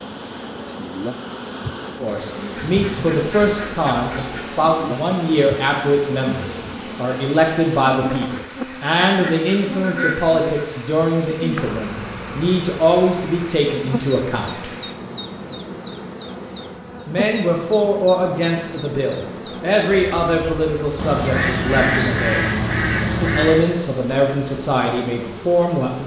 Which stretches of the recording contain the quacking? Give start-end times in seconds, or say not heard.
2.5-4.5, 9.1-10.7, 20.9-23.7.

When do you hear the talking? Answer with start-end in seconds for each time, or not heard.
2.0-14.7, 17.1-22.5, 23.2-26.0.